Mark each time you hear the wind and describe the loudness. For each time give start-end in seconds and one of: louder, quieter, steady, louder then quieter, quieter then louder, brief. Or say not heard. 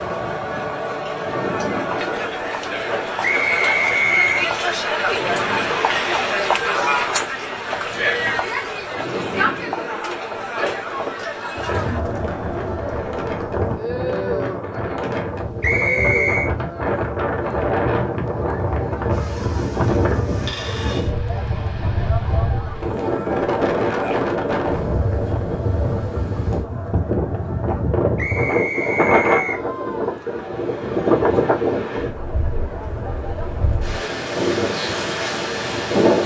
0.0-36.2 louder.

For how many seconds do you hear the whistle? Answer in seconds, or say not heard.
4 s.